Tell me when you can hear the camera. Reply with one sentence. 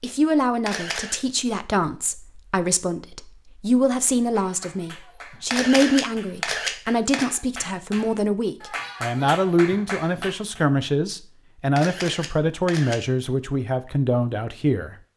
The camera can be heard from 0.7 to 1.2 s, from 5.5 to 7.3 s and from 11.8 to 13.0 s.